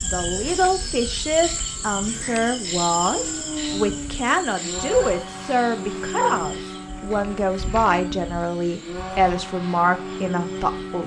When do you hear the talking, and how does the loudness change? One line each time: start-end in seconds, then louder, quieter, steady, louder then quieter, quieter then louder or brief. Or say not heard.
0.0-11.0 steady.